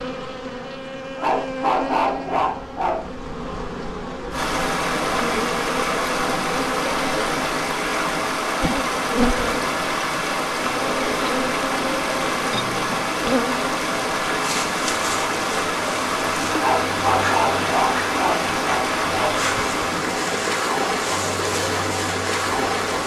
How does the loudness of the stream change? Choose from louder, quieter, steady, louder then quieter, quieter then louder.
steady.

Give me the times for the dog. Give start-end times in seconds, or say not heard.
1.1-3.0, 16.6-19.4.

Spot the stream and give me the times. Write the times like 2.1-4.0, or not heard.
4.3-23.0.